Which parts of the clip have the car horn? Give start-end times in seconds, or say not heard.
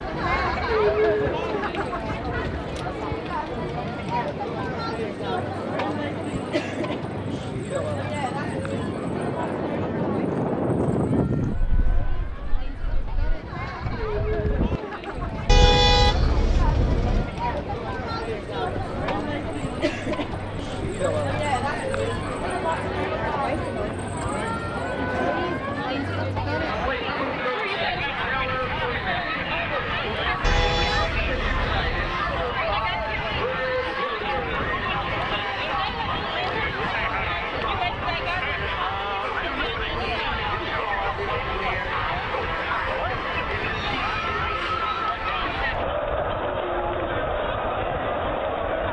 15.4-17.2, 30.4-32.2.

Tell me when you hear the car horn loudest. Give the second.
16 s.